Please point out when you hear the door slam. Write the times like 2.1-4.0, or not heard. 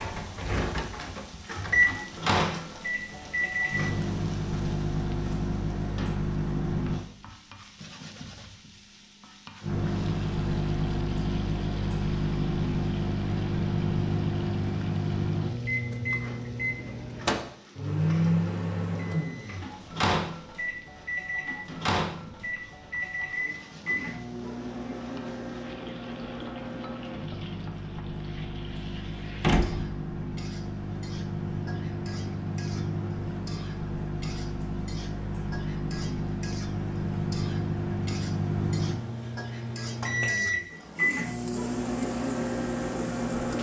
29.4-30.0.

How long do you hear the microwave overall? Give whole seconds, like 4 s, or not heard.
41 s.